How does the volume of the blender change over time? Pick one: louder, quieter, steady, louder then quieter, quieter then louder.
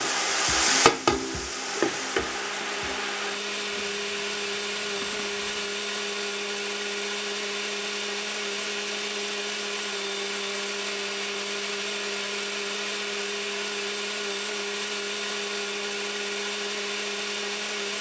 steady.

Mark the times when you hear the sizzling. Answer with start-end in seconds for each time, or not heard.
0.0-5.7.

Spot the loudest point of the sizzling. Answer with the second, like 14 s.
1 s.